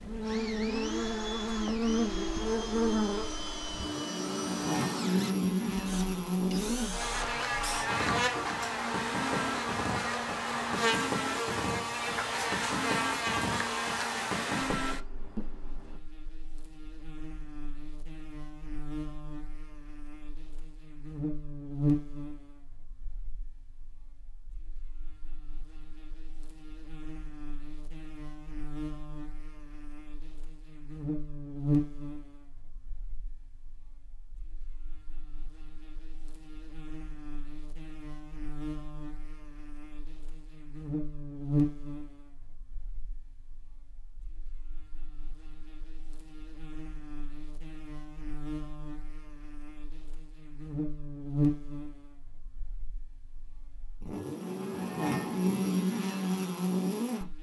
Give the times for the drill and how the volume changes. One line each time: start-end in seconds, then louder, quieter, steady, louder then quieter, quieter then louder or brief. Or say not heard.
0.1-16.0 steady.